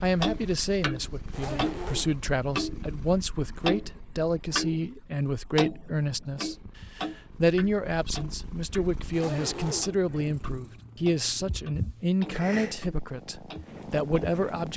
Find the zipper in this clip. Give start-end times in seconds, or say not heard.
1.3-2.2, 9.1-10.0.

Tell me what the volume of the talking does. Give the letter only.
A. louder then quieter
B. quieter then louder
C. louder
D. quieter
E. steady
E.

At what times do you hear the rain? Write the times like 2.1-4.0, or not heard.
not heard.